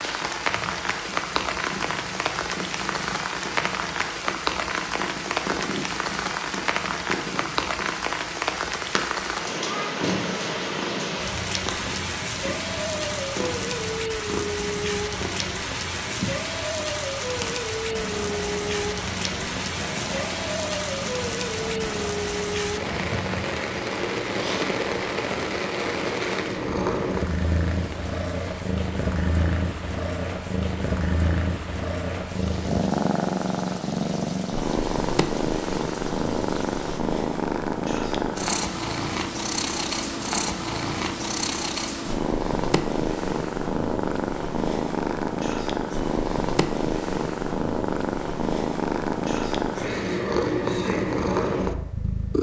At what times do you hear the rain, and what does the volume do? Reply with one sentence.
You can hear the rain from 0.0 to 37.0 s, getting quieter.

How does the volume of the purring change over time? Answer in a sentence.
The loudness of the purring goes up.